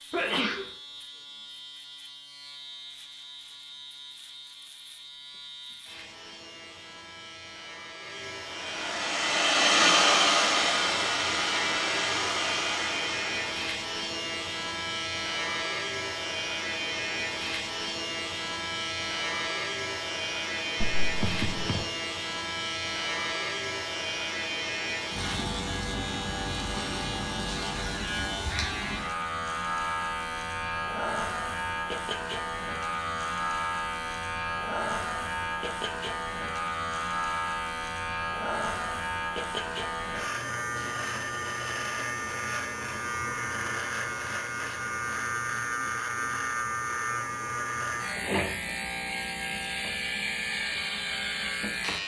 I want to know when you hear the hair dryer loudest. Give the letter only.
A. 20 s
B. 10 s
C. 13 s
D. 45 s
B.